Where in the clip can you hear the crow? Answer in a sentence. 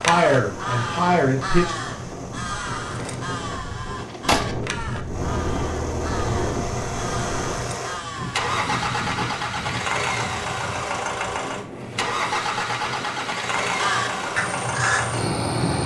The crow can be heard from 0.0 to 8.6 s and from 13.6 to 15.8 s.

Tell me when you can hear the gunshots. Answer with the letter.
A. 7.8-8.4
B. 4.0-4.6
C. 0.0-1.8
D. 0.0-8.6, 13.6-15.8
B.